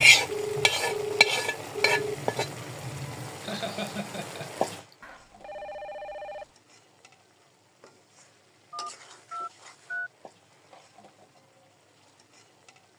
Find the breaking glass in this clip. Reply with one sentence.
You can't hear the breaking glass here.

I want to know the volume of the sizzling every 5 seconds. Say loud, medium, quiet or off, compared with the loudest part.
loud, quiet, quiet.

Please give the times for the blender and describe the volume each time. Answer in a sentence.
The blender can't be heard in this clip.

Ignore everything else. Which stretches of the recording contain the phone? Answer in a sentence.
You can hear the phone from 0.2 to 2.2 s, from 5.0 to 6.5 s and from 8.7 to 10.1 s.